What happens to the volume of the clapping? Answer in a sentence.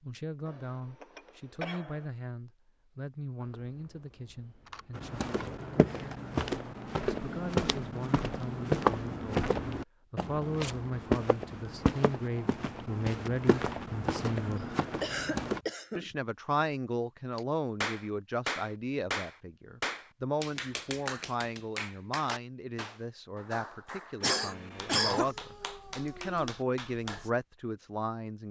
The loudness of the clapping goes down.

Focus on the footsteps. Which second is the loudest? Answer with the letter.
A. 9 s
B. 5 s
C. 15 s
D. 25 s
A.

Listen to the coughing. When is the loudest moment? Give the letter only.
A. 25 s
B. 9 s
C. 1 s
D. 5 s
A.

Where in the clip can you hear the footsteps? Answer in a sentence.
You can hear the footsteps from 5.0 to 15.6 s.